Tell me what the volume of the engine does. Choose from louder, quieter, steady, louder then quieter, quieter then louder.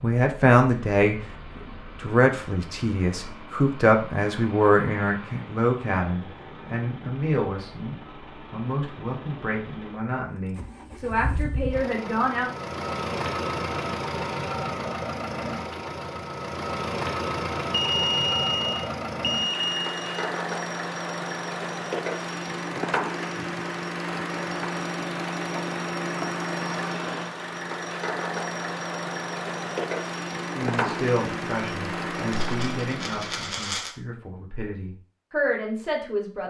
louder.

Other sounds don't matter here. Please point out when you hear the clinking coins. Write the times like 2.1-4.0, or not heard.
32.3-33.9.